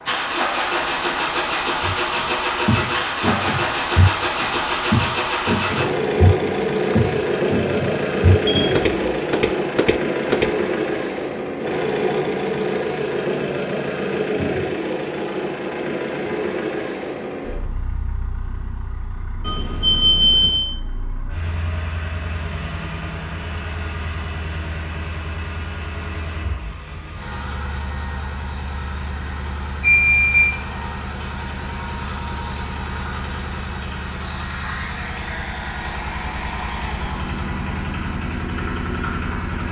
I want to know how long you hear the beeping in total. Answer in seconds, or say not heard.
3 s.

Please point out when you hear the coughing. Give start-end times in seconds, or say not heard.
not heard.